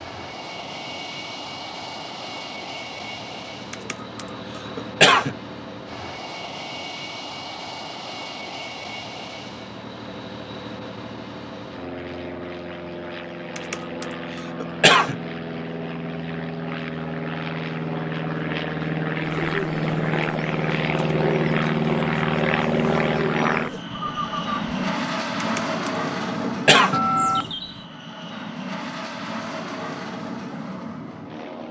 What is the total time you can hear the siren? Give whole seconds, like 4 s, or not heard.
not heard.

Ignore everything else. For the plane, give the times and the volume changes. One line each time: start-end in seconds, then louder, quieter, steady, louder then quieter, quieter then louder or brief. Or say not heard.
0.0-31.6 louder then quieter.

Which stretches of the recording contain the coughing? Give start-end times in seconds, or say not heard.
3.7-5.3, 13.6-15.2, 25.4-27.0.